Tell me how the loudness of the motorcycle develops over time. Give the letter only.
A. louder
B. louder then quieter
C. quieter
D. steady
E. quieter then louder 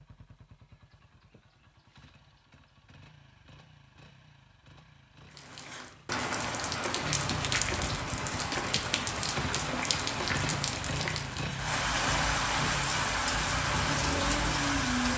A.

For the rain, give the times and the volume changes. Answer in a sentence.
The rain can be heard from 5.3 to 15.1 s, at a steady volume.